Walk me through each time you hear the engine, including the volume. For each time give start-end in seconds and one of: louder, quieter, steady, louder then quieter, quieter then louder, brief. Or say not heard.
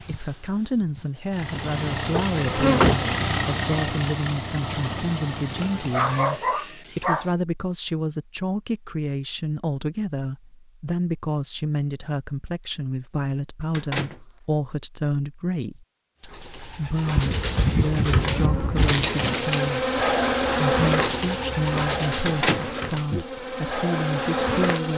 0.0-6.5 louder then quieter.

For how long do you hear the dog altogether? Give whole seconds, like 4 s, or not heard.
2 s.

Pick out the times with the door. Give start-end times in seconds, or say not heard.
2.1-3.0, 13.7-14.2, 22.2-23.2.